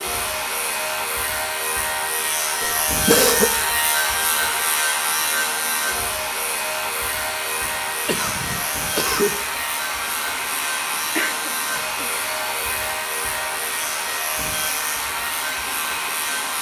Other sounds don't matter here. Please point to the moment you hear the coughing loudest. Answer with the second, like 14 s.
3 s.